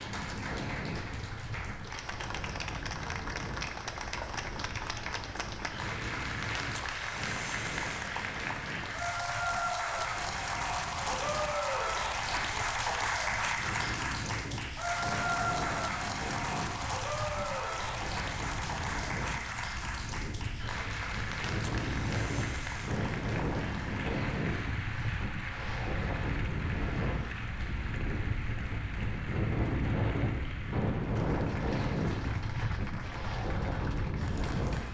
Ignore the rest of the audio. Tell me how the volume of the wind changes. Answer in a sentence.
The volume of the wind goes up.